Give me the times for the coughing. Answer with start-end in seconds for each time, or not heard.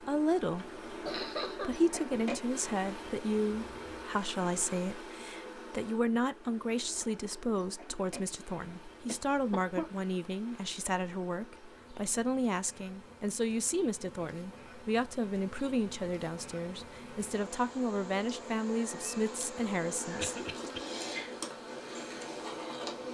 1.1-1.8, 9.1-9.9, 20.1-20.8.